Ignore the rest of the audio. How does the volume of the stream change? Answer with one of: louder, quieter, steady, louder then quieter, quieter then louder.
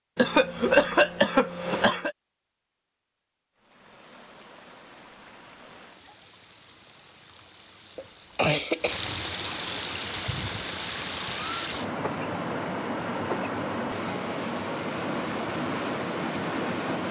louder.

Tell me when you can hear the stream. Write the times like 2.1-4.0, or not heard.
3.5-17.0.